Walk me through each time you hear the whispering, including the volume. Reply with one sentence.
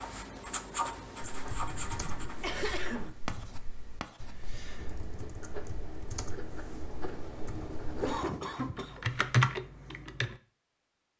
You can't hear the whispering here.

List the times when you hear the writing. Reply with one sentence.
You can hear the writing from 0.0 to 8.7 s.